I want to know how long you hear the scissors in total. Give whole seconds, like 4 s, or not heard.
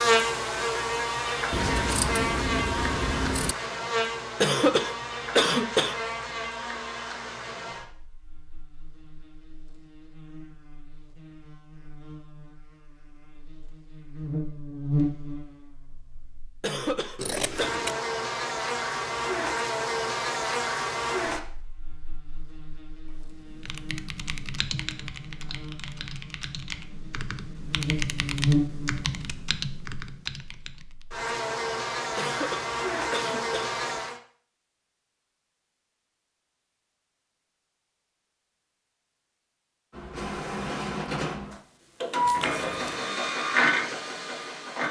4 s.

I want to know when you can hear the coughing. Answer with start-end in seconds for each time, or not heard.
4.4-6.0, 16.6-17.8, 32.1-33.8.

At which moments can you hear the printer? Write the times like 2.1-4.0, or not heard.
39.9-44.8.